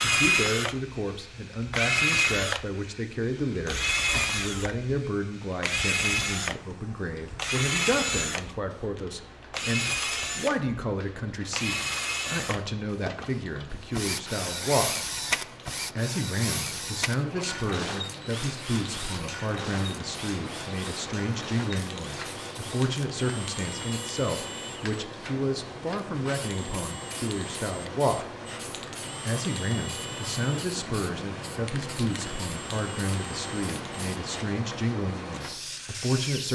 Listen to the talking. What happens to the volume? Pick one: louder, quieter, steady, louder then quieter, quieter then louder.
steady.